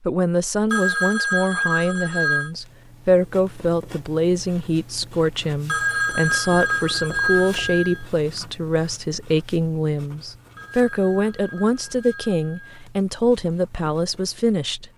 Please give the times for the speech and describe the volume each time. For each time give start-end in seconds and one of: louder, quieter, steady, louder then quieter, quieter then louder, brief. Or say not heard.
0.1-14.9 steady.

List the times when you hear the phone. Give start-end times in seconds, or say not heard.
0.7-2.5, 5.7-8.1, 10.6-12.8.